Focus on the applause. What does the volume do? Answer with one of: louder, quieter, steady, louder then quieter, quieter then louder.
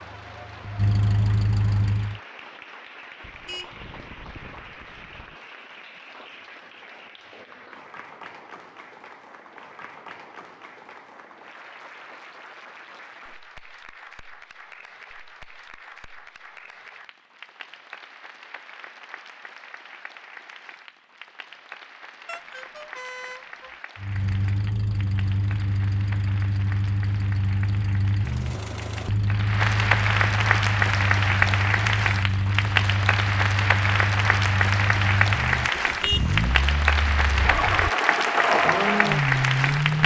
louder.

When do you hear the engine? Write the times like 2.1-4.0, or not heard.
0.0-2.2, 23.9-40.0.